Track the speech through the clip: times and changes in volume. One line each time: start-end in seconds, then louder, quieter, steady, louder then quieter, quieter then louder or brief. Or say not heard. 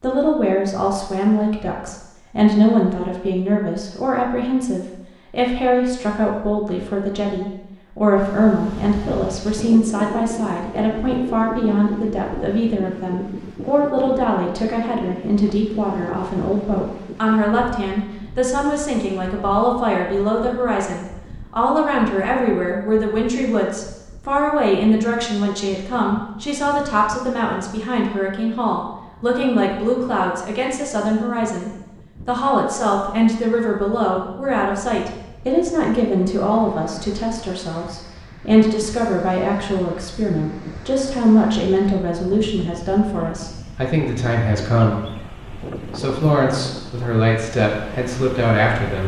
0.0-49.0 steady.